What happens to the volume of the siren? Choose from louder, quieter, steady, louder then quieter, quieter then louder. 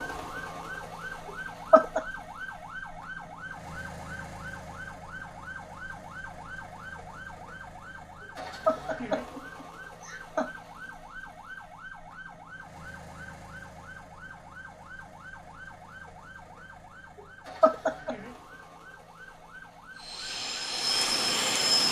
quieter.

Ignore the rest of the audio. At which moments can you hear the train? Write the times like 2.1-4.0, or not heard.
19.9-21.8.